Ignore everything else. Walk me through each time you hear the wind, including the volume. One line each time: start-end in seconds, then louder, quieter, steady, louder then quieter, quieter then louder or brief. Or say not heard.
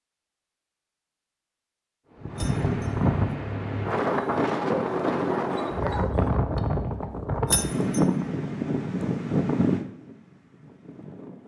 2.2-11.4 steady.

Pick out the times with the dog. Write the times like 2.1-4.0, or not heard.
4.8-6.4.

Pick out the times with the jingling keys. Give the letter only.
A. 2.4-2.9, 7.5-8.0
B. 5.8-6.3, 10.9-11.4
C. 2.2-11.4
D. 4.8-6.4
A.